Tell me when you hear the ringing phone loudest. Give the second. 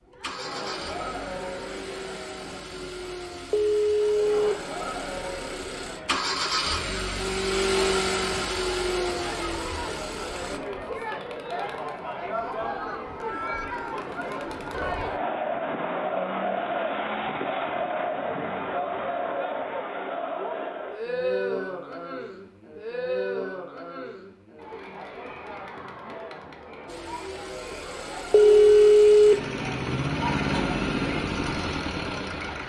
29 s.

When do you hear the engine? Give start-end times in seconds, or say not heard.
0.0-10.6, 26.9-32.6.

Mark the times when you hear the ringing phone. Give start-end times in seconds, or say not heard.
3.5-4.5, 28.3-29.4.